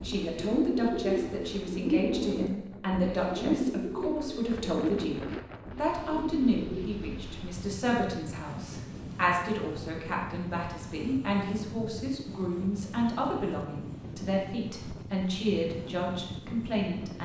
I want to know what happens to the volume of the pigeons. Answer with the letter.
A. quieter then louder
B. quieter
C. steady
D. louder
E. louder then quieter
B.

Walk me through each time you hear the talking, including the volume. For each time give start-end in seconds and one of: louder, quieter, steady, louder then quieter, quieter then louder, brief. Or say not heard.
0.0-5.2 steady
5.8-17.2 steady.